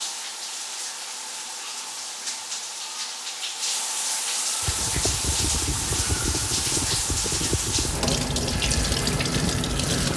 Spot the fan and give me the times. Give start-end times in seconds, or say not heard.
4.6-10.1.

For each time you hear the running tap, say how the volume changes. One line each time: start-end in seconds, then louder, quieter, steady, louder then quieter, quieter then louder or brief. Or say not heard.
0.0-10.1 louder.